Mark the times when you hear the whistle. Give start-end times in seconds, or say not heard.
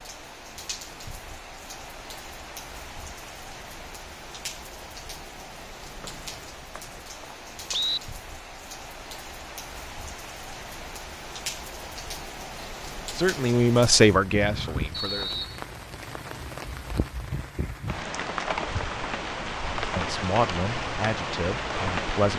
6.0-8.0, 14.9-15.6.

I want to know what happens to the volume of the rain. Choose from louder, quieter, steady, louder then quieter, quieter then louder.
louder.